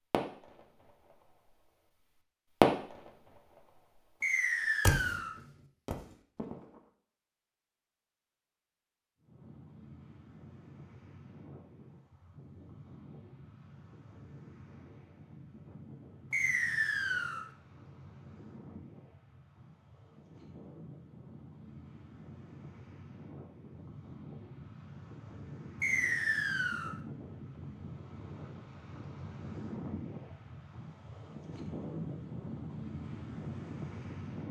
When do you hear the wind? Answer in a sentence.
You can hear the wind from 9.2 to 34.4 s.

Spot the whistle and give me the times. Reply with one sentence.
You can hear the whistle from 4.2 to 5.3 s, from 16.3 to 17.4 s and from 25.8 to 26.9 s.